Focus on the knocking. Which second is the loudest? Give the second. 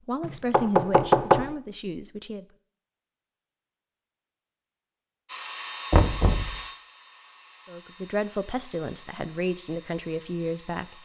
1 s.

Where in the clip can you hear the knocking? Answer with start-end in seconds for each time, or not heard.
0.2-1.4, 5.9-6.5.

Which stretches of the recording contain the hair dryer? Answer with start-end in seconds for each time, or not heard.
5.2-11.0.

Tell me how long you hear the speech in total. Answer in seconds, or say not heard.
6 s.